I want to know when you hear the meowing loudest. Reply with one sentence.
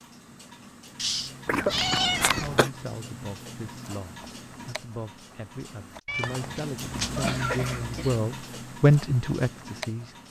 The volume of the meowing peaks at 2 seconds.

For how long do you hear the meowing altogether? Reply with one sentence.
The meowing can be heard for 3 seconds in total.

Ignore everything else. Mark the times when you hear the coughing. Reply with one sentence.
You can hear the coughing from 1.4 to 2.7 s and from 7.0 to 8.2 s.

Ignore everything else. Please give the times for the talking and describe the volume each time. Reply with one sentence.
The talking can be heard from 2.3 to 10.2 s, getting louder.